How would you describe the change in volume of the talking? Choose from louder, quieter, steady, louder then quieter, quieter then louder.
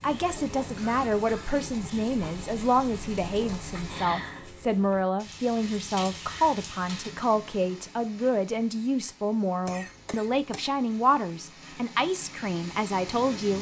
steady.